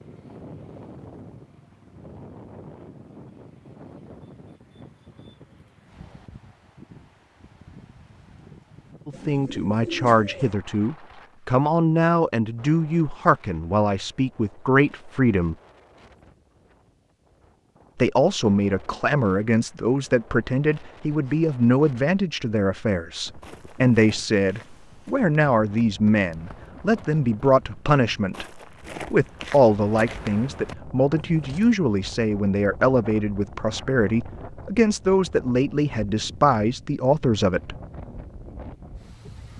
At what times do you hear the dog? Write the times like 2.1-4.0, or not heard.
not heard.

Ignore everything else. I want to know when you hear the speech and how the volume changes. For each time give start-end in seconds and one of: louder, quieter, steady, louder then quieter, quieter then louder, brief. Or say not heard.
9.1-15.6 steady
17.9-37.8 steady.